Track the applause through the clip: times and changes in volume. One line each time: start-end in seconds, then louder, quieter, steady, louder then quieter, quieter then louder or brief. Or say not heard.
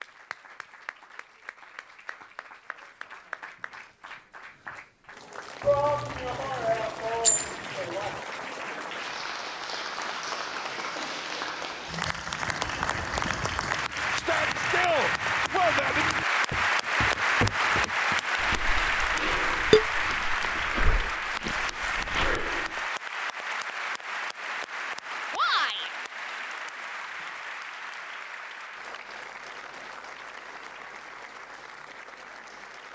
0.0-32.8 louder then quieter.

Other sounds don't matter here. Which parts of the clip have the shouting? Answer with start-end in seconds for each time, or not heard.
5.6-8.2, 14.1-16.1, 25.3-25.9.